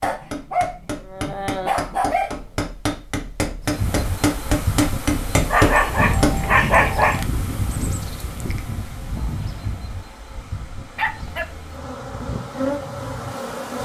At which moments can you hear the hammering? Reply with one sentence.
The hammering can be heard from 0.0 to 6.5 s.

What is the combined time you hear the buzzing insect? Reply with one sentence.
You can hear the buzzing insect for 10 seconds altogether.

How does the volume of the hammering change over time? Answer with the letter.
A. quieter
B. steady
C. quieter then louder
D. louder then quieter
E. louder
E.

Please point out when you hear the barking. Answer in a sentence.
The barking can be heard from 0.0 to 2.5 s, from 5.5 to 7.2 s and from 10.9 to 11.9 s.